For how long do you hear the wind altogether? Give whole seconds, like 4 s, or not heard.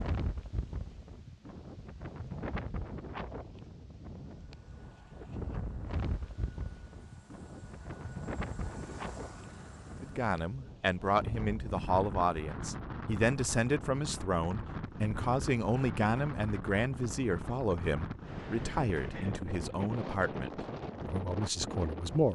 22 s.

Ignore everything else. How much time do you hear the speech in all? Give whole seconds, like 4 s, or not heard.
12 s.